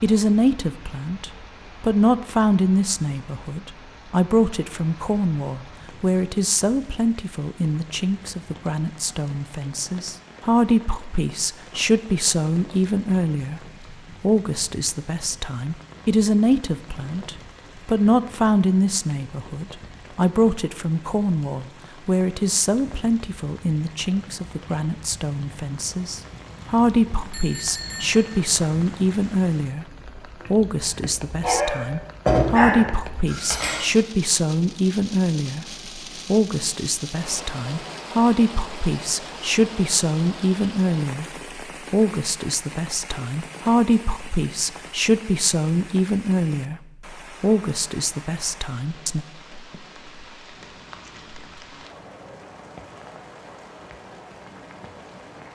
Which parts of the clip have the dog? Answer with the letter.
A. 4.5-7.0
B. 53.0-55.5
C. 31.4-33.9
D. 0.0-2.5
C.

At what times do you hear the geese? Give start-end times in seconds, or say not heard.
not heard.